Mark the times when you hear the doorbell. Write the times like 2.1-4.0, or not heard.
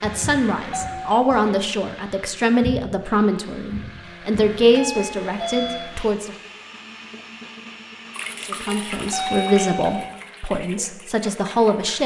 0.7-1.5, 4.6-6.0, 8.7-10.2.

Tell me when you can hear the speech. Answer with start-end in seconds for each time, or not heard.
0.0-6.3, 8.4-12.0.